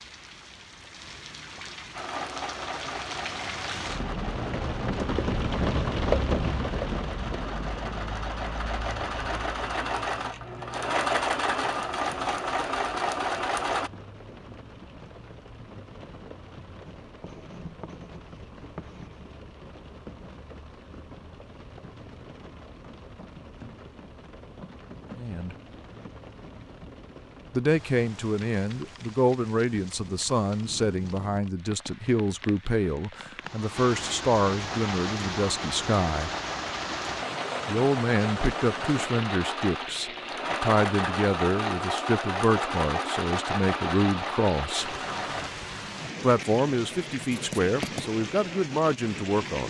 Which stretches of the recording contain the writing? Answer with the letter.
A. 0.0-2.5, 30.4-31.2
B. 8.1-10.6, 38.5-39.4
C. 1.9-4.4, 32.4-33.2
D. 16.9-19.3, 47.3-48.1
D.